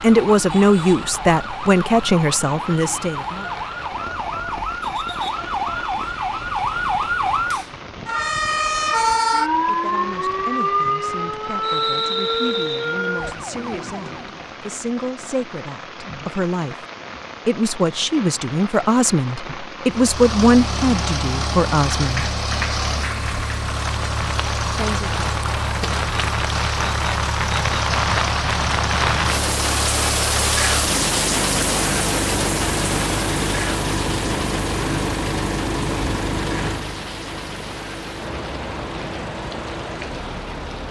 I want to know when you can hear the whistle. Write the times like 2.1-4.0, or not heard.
11.6-12.9.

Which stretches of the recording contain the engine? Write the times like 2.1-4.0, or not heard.
19.9-40.8.